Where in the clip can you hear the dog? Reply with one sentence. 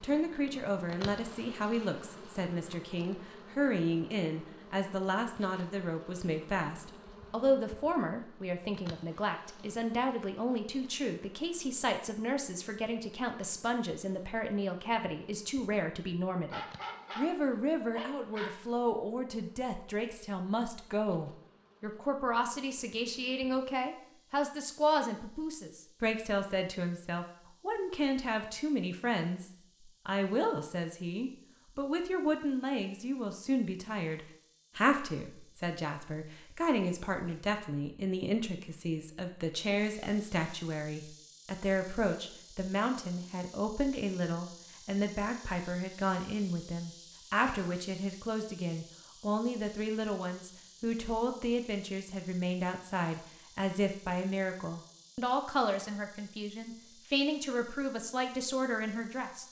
The dog can be heard from 16.4 to 18.5 s.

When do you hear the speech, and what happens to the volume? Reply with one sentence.
The speech can be heard from 0.0 to 59.4 s, at a steady volume.